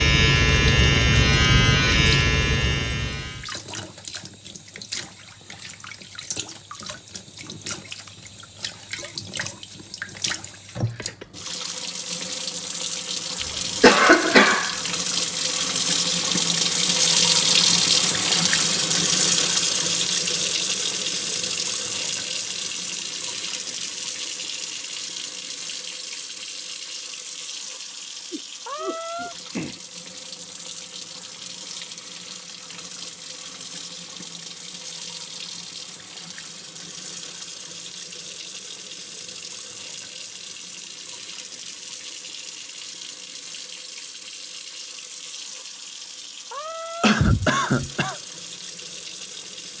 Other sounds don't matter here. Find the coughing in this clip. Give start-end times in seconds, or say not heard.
13.4-14.8, 28.3-29.8, 47.0-48.1.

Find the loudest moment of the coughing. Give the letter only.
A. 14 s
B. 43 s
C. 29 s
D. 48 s
A.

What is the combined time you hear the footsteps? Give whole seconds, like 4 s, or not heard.
not heard.